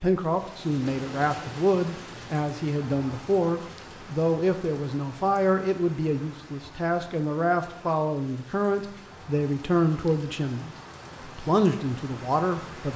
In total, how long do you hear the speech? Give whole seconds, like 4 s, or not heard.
13 s.